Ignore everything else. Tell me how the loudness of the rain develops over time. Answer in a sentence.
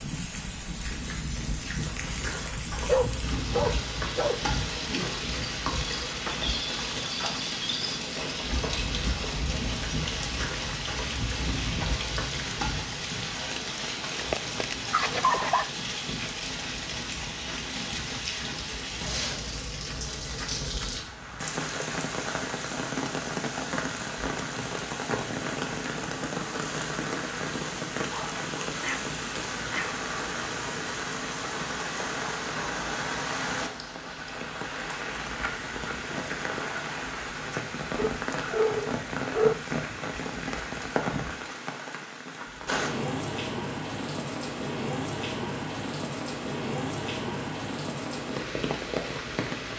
The volume of the rain stays about the same.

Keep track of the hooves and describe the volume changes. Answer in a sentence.
The volume of the hooves stays about the same.